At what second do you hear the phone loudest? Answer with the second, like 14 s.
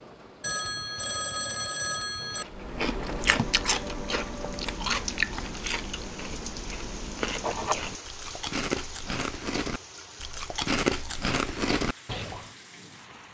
1 s.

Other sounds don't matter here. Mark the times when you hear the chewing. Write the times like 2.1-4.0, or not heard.
2.4-12.4.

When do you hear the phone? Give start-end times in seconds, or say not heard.
0.4-2.5.